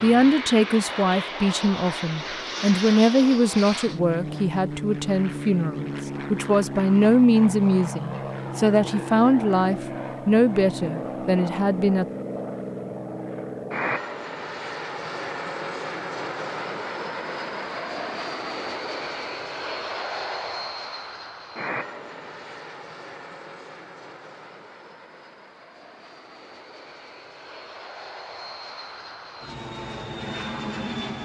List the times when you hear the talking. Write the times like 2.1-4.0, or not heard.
0.0-12.1.